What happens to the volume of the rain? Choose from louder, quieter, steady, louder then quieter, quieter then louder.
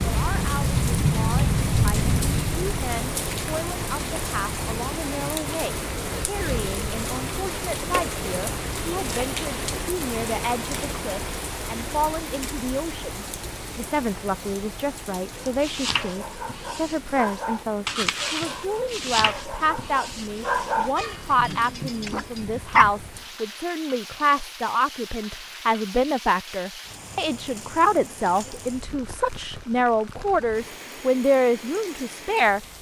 quieter.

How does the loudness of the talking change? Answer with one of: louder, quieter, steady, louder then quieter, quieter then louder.
louder.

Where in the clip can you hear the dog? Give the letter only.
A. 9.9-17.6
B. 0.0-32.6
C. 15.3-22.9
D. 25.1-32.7
C.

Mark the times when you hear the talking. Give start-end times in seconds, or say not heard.
0.0-32.6.